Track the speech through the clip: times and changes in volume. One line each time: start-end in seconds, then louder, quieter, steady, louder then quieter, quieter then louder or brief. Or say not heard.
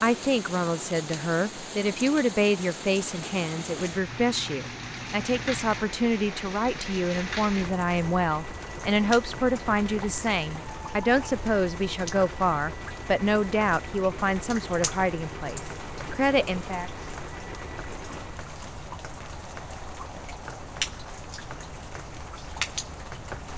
0.0-16.9 steady.